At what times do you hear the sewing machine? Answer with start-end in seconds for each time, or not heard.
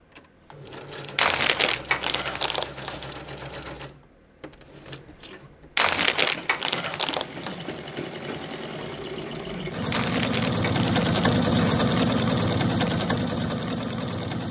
0.0-14.4.